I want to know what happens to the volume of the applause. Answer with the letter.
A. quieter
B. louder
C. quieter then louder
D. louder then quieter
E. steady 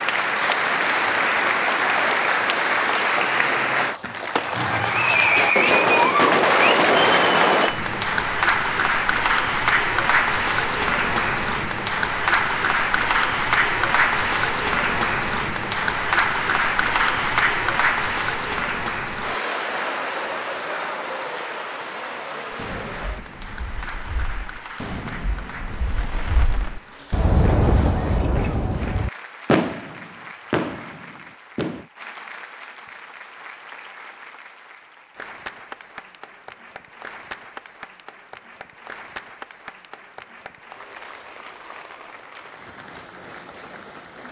A.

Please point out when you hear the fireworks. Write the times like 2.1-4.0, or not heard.
4.5-7.8, 22.5-31.9.